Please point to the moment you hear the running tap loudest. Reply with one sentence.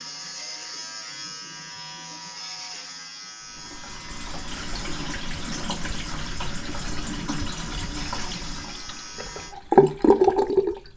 The loudest moment of the running tap is at 10 seconds.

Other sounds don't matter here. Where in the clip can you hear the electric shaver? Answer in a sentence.
The electric shaver can be heard from 0.0 to 9.6 s.